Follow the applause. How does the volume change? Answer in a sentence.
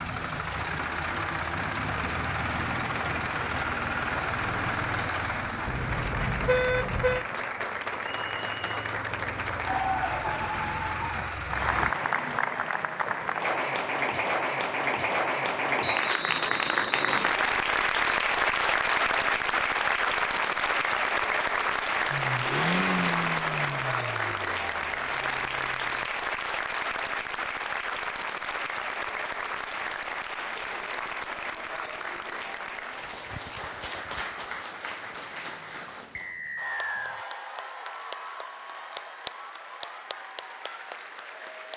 The volume of the applause goes up, then down.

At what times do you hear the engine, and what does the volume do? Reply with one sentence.
You can hear the engine from 0.0 to 11.9 s, getting quieter then louder; and from 22.1 to 26.1 s, getting quieter.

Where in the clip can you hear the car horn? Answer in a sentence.
The car horn can be heard from 5.7 to 7.2 s.